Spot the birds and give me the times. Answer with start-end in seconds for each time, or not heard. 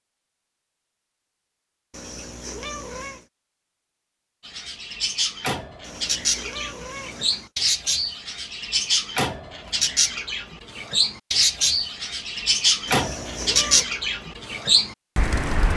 4.5-15.7.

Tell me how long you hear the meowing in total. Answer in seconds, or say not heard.
4 s.